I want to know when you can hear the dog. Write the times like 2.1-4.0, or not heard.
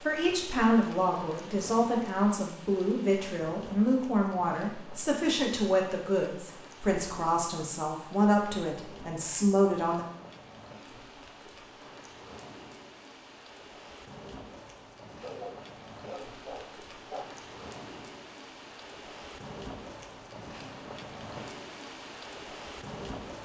15.2-17.2.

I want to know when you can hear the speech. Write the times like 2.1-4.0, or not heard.
0.0-10.1.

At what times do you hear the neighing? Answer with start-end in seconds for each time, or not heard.
not heard.